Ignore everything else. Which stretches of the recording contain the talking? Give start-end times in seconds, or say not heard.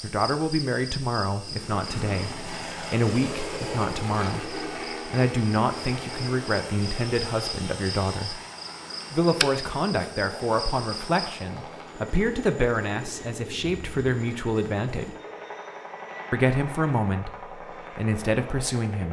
0.0-8.4, 9.1-15.2, 16.3-17.3, 17.9-19.0.